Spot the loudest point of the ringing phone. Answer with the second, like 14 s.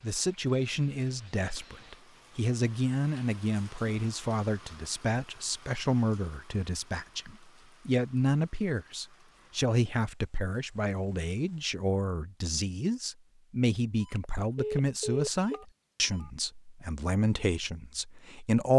15 s.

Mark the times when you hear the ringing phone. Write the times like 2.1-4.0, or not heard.
14.0-16.3.